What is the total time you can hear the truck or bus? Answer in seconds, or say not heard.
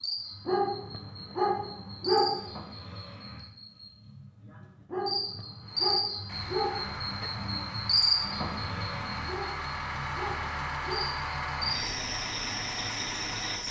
8 s.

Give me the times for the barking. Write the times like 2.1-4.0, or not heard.
0.5-2.5, 4.9-7.3, 9.2-11.1.